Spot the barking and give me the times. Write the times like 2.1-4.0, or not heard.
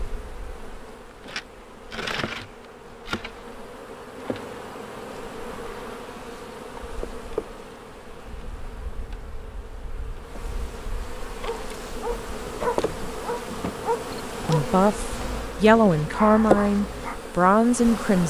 11.4-17.2.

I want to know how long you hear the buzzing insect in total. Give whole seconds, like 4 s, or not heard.
18 s.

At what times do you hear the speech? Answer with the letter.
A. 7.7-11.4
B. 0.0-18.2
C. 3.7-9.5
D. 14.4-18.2
D.